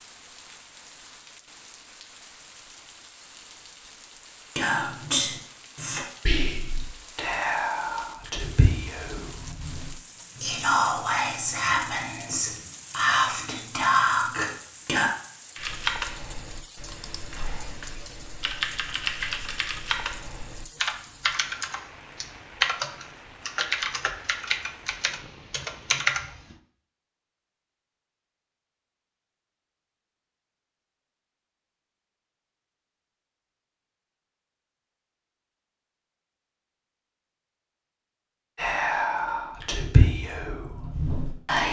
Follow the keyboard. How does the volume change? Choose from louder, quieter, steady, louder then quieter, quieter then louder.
louder.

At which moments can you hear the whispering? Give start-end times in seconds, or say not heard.
4.5-15.1, 38.5-41.6.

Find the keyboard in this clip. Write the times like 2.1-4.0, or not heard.
15.6-26.6.